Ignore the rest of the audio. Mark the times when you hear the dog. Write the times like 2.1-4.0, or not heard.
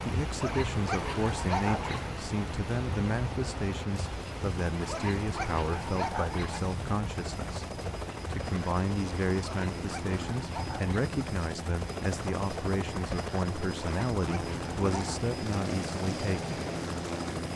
0.4-2.1, 4.8-6.6, 9.4-11.1, 13.8-15.3.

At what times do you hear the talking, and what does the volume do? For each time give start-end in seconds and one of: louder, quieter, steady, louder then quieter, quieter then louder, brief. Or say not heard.
0.0-16.6 steady.